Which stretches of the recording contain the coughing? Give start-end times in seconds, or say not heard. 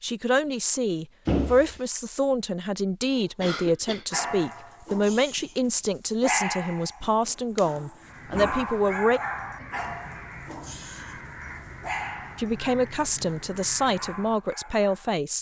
3.4-4.0.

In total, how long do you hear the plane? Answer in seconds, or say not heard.
not heard.